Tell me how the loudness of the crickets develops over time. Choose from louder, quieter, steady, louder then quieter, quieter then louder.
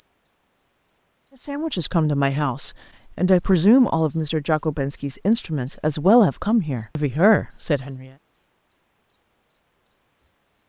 louder then quieter.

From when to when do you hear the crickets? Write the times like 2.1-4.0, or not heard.
0.0-10.6.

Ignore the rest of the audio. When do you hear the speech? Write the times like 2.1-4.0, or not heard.
1.4-8.1.